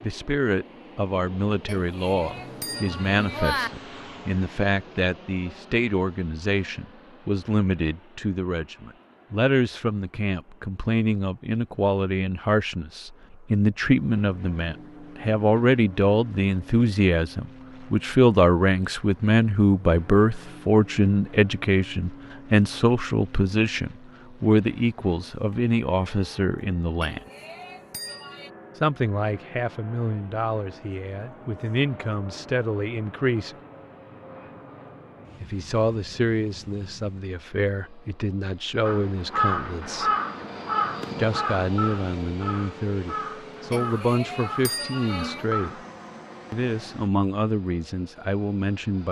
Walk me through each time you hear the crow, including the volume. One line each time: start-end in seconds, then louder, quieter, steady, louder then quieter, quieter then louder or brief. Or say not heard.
38.9-45.9 quieter.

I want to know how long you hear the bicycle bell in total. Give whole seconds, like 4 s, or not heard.
5 s.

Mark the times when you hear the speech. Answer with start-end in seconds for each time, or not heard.
0.0-27.2, 28.8-33.5, 35.4-40.1, 41.1-45.8, 46.5-49.0.